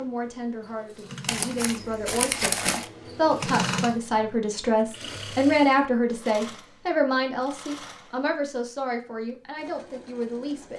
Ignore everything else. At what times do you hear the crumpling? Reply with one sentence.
You can hear the crumpling from 1.2 to 2.9 s.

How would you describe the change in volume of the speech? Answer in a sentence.
The volume of the speech goes up, then down.